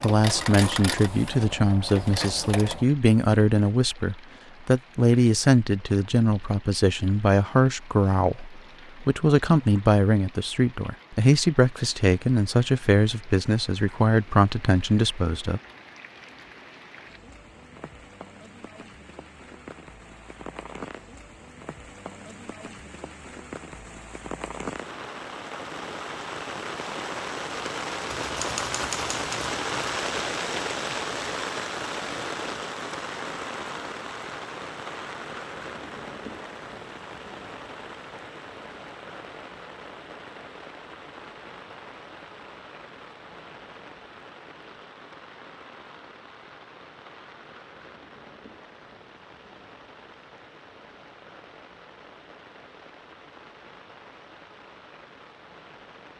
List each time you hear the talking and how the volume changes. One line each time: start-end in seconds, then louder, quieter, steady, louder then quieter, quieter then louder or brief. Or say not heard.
0.0-15.6 steady.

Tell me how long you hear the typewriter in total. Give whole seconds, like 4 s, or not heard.
2 s.